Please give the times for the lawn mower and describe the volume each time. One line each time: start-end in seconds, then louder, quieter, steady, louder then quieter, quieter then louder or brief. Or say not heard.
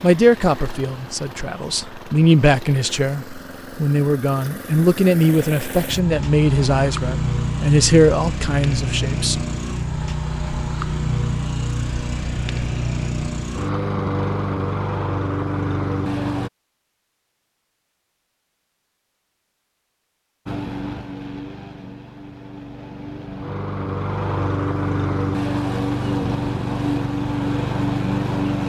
0.0-16.5 louder
20.4-28.6 louder.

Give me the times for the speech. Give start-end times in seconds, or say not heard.
0.0-9.4.